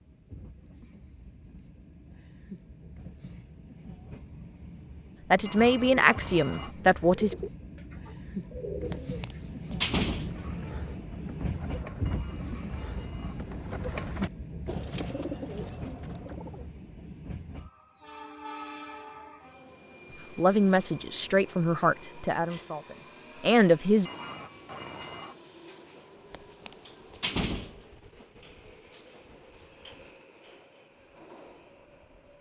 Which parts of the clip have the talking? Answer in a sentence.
The talking can be heard from 5.3 to 7.3 s and from 20.4 to 24.1 s.